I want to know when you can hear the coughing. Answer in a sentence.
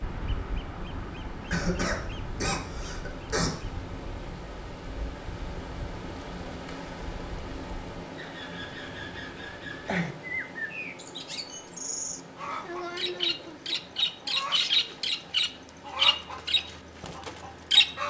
The coughing can be heard from 1.5 to 3.5 s.